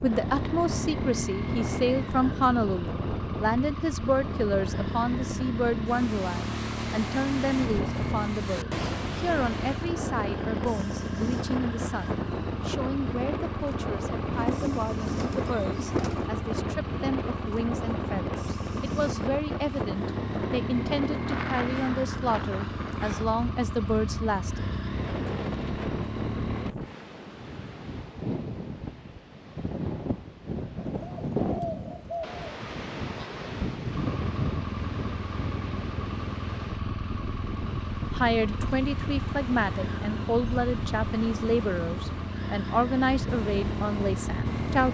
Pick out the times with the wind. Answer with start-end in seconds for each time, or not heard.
0.0-44.8.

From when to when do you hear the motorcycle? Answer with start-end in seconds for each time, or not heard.
0.1-26.7, 33.9-44.8.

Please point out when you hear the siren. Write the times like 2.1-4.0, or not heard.
not heard.